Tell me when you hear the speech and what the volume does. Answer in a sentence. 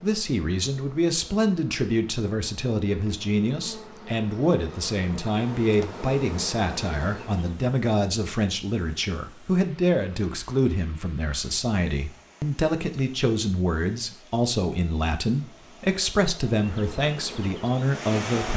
You can hear the speech from 0.0 to 18.5 s, at a steady volume.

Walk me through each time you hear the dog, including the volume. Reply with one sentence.
You can't hear the dog here.